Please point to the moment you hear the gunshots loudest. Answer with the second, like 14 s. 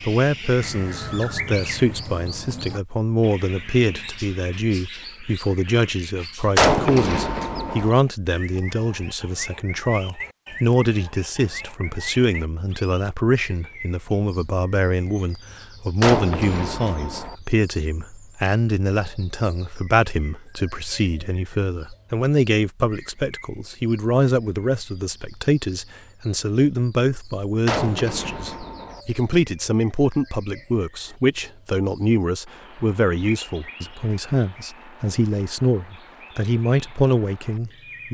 7 s.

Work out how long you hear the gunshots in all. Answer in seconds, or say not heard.
4 s.